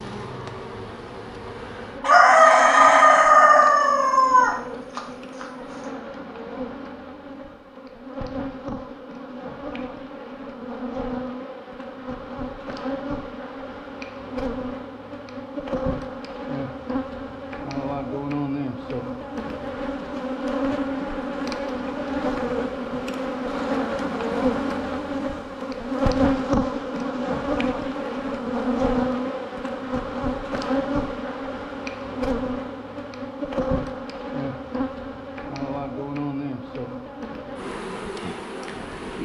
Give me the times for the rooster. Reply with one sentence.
The rooster can be heard from 2.0 to 5.5 s.